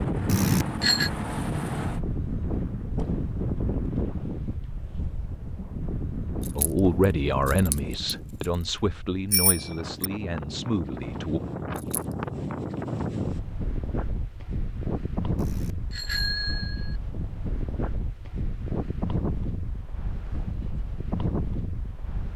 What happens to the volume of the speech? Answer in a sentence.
The volume of the speech goes down.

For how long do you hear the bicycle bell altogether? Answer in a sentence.
The bicycle bell can be heard for 3 seconds in total.